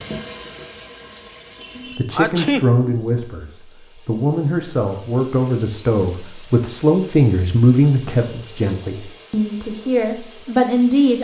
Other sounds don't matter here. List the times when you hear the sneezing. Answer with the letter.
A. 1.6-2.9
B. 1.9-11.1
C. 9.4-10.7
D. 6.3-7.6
A.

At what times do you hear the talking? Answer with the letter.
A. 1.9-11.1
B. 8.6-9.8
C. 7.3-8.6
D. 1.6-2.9
A.